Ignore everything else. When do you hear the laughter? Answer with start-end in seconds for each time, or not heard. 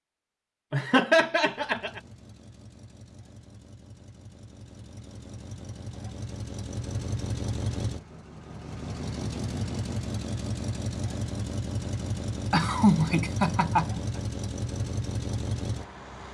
0.7-2.0, 12.5-14.2.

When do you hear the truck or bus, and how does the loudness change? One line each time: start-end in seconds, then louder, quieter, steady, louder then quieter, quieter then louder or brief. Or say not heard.
1.4-16.2 louder.